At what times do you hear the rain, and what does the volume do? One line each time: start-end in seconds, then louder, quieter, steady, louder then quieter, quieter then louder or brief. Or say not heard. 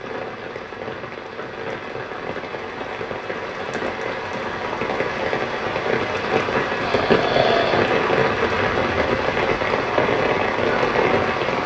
0.0-11.6 louder.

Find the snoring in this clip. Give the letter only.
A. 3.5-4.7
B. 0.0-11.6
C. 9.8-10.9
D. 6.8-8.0
D.